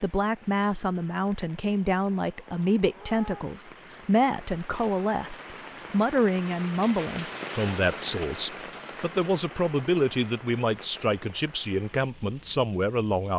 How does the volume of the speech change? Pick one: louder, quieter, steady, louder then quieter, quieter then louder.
steady.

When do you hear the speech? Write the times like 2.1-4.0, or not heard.
0.0-13.3.